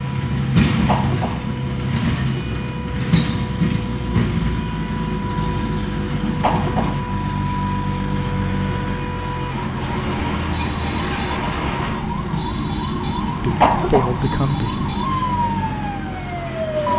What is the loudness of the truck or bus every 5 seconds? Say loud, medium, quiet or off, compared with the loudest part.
loud, loud, medium, medium.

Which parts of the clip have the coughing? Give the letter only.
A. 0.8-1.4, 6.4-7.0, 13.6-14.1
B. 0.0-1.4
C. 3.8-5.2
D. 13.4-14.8
A.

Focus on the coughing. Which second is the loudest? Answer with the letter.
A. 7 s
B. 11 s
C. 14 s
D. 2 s
C.